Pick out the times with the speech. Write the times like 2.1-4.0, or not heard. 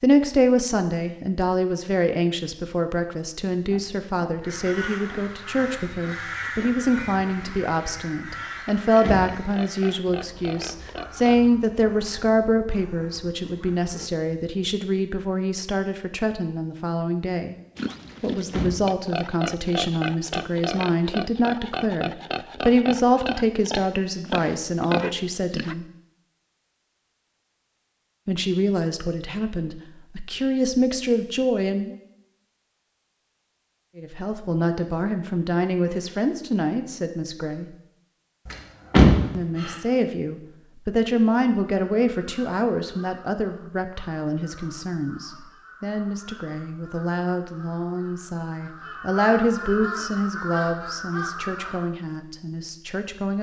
0.0-17.6, 18.2-25.9, 28.2-31.9, 34.0-37.6, 39.4-53.3.